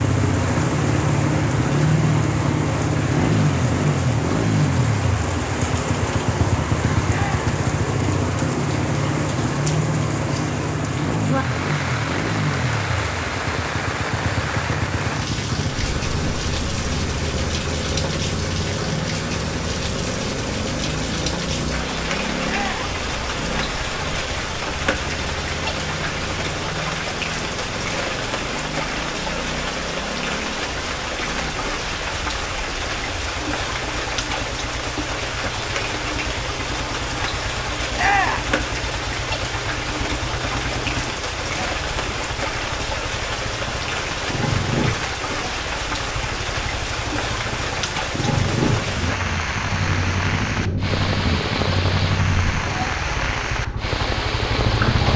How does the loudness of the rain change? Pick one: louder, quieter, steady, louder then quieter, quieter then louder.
steady.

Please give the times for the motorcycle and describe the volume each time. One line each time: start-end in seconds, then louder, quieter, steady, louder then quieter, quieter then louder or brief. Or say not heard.
0.0-55.1 quieter then louder.